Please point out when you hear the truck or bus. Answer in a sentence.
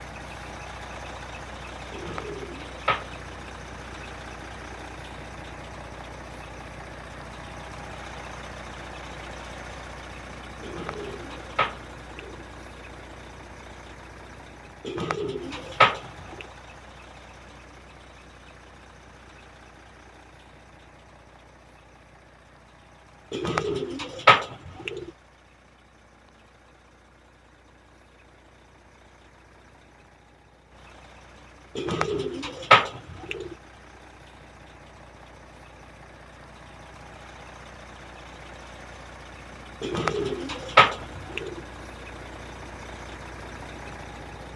You can hear the truck or bus from 0.0 to 44.5 s.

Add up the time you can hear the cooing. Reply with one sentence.
The cooing can be heard for 10 seconds in total.